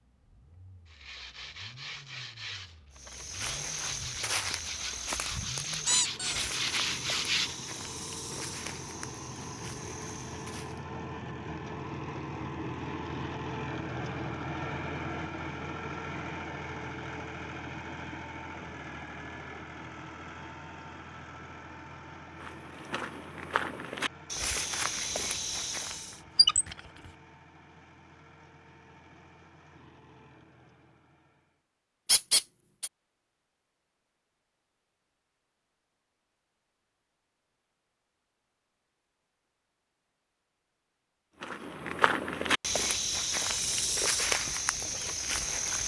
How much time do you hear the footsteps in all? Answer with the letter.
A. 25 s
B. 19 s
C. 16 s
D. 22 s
C.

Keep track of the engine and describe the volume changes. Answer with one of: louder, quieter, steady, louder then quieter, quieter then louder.
louder then quieter.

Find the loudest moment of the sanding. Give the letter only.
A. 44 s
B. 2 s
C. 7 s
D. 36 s
C.